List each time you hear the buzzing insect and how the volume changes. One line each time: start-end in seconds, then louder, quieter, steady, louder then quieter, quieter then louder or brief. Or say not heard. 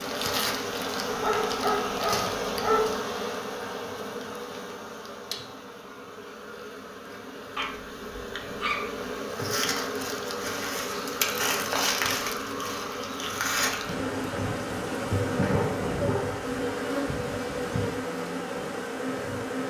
0.0-19.6 quieter then louder.